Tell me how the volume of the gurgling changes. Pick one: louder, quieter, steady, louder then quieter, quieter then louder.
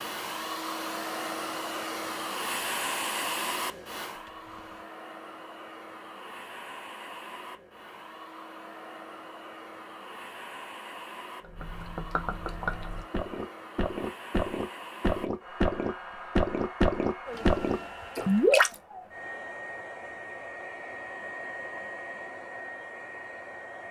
louder.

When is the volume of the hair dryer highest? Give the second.
3 s.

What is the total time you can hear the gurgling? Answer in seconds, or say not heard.
7 s.